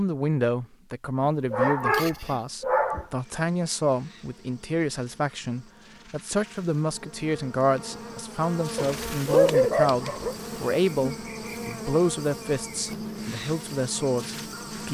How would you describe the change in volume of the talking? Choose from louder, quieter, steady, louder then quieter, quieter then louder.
steady.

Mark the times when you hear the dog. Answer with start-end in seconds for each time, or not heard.
1.5-3.0, 8.8-10.3.